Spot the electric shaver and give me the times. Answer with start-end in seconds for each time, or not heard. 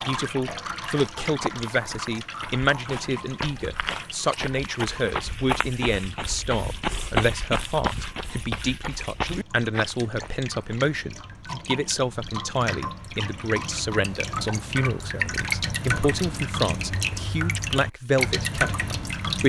not heard.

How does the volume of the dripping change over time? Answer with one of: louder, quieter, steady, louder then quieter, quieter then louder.
quieter then louder.